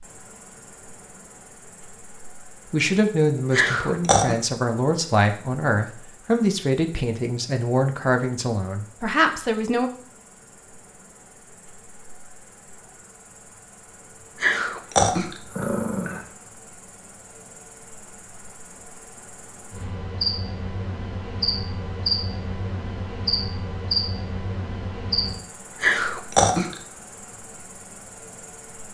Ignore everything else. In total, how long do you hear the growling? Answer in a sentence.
You can hear the growling for 4 seconds altogether.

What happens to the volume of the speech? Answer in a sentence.
The volume of the speech stays about the same.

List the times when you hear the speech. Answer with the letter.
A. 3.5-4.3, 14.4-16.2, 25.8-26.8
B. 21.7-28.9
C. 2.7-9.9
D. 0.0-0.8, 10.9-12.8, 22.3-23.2
C.